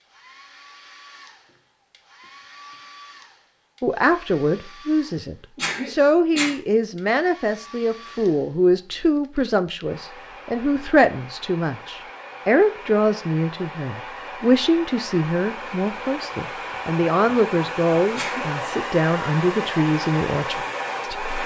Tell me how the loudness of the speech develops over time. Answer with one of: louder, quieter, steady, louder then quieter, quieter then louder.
steady.